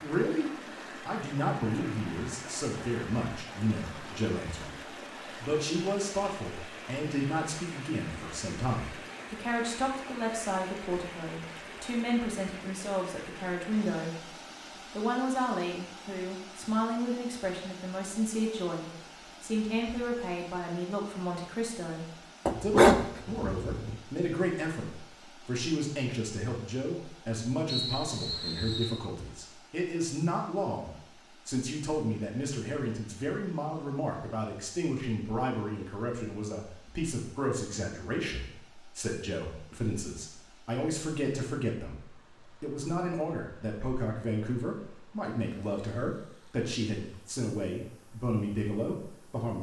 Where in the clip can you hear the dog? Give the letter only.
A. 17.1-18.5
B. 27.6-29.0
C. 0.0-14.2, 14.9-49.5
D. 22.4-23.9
D.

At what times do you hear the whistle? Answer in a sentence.
You can hear the whistle from 27.6 to 29.0 s.